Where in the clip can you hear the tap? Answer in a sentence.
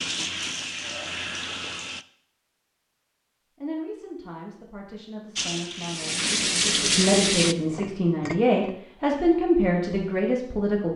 You can hear the tap from 0.0 to 2.0 s and from 5.3 to 7.5 s.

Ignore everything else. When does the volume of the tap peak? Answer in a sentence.
The loudest moment of the tap is at 7 seconds.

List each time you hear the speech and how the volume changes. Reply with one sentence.
The speech can be heard from 3.6 to 10.9 s, getting louder.